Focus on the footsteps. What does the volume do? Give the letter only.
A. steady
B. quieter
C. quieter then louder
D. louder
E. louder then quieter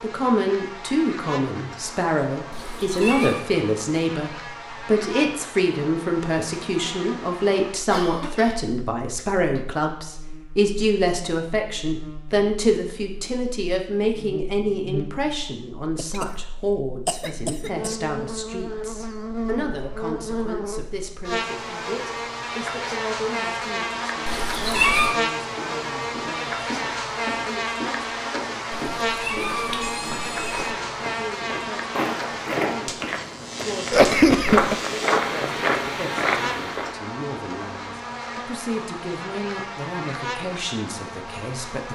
D.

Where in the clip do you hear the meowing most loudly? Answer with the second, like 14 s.
25 s.